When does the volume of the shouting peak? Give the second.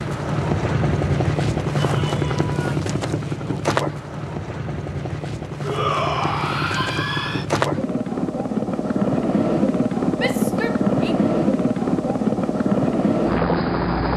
6 s.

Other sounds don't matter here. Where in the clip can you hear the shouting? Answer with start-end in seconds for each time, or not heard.
1.8-2.8, 5.6-7.5, 10.2-11.2.